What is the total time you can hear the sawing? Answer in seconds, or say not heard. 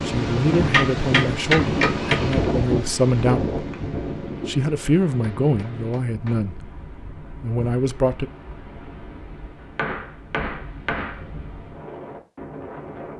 not heard.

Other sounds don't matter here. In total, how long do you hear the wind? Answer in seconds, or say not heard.
13 s.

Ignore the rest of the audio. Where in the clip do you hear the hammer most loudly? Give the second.
2 s.